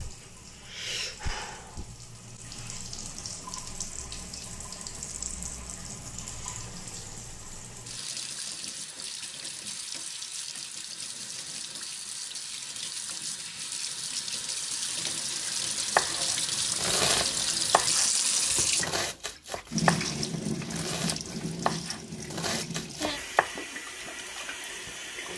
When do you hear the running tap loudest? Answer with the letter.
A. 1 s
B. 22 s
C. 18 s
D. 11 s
C.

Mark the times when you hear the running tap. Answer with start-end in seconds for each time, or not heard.
0.0-25.3.